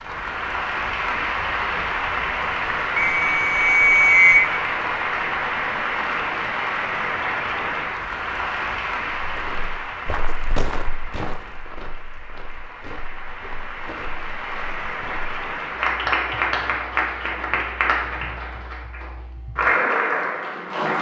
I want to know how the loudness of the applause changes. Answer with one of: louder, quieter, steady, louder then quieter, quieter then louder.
quieter then louder.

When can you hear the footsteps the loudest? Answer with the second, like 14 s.
11 s.